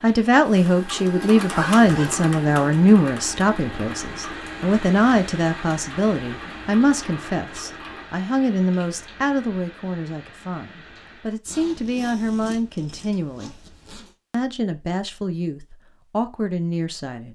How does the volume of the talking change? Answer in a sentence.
The volume of the talking goes down.